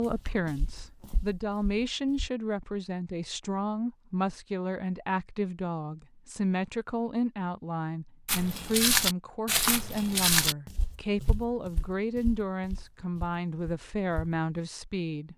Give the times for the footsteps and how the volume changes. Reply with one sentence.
You can hear the footsteps briefly from 0.0 to 2.3 s; and from 8.2 to 14.4 s, getting quieter.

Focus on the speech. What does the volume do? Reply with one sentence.
The loudness of the speech stays about the same.